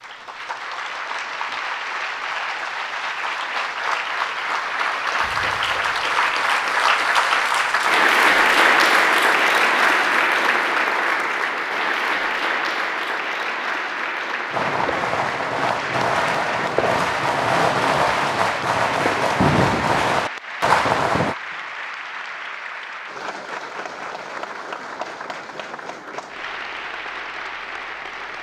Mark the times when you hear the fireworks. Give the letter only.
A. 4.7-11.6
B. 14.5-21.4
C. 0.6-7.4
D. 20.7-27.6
B.